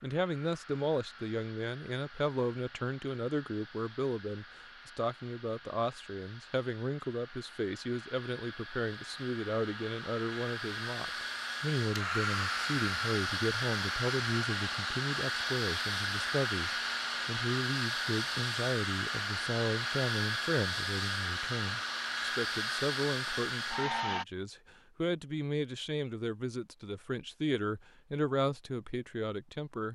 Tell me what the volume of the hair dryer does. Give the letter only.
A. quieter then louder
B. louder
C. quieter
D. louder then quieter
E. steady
B.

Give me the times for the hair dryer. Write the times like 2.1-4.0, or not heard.
0.0-24.2.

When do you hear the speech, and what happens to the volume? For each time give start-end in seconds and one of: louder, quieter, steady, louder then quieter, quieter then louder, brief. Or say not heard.
0.0-29.9 steady.